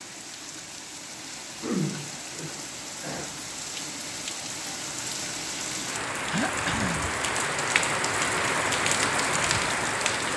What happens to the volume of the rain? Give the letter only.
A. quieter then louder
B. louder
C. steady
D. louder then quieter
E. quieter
B.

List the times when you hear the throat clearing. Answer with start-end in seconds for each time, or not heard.
1.6-3.3, 6.3-7.0.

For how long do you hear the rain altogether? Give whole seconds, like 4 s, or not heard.
10 s.